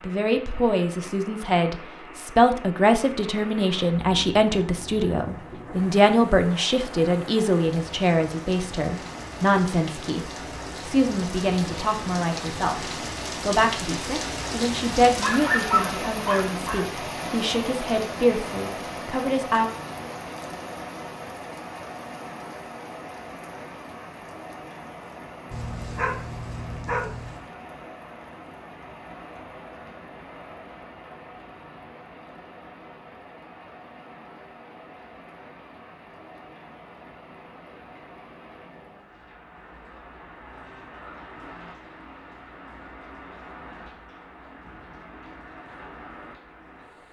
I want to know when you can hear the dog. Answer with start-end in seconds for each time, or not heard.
15.1-16.9, 25.5-27.4.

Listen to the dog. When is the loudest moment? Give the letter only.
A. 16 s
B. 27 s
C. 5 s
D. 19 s
A.